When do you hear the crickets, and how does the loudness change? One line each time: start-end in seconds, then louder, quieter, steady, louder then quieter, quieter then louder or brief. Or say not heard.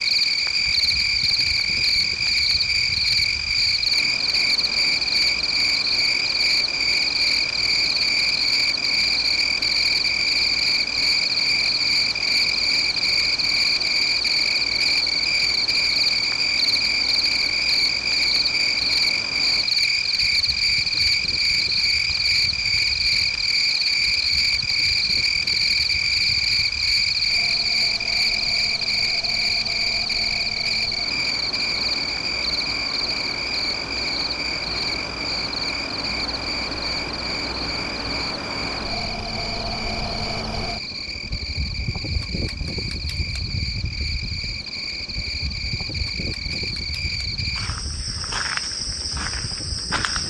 0.0-50.2 quieter.